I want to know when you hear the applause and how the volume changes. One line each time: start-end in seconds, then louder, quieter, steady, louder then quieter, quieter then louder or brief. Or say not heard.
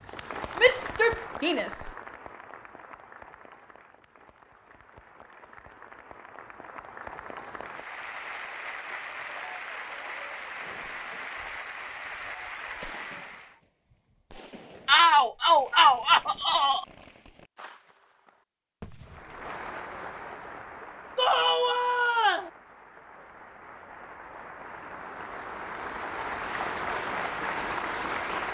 0.0-13.6 quieter then louder
19.1-28.4 quieter then louder.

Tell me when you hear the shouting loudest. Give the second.
15 s.